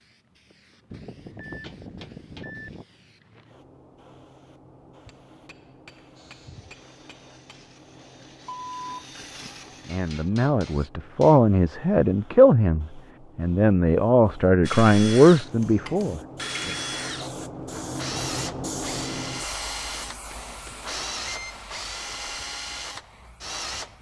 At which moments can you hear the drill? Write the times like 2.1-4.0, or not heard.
6.2-10.9, 14.6-23.9.